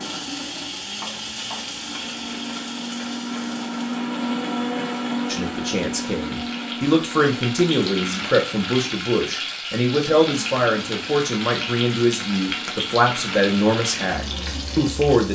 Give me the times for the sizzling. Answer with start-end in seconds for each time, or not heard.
0.0-15.3.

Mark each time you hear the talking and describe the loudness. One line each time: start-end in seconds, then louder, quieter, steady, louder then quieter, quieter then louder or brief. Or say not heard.
5.2-15.3 steady.